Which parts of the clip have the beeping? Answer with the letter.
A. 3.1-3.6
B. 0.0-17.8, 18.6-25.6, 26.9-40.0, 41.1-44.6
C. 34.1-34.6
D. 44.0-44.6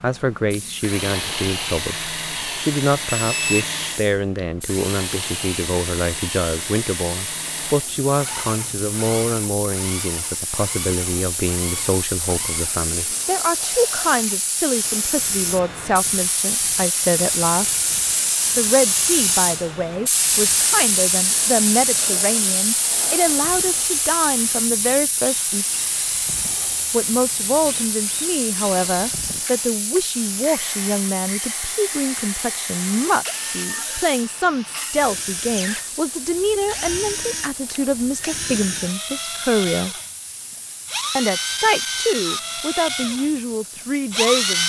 A.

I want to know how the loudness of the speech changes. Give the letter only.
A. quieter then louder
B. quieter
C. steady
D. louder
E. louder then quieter
C.